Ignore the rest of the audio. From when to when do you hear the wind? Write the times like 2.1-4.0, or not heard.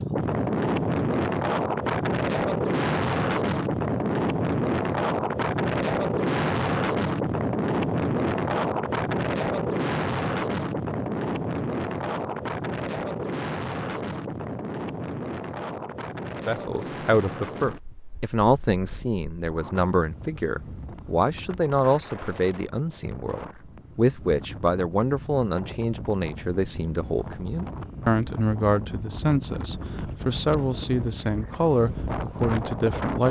0.0-33.2.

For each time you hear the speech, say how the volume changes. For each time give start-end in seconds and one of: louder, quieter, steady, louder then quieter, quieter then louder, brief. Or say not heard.
16.2-33.2 steady.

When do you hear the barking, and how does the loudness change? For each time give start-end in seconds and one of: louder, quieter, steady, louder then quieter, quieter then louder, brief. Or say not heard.
not heard.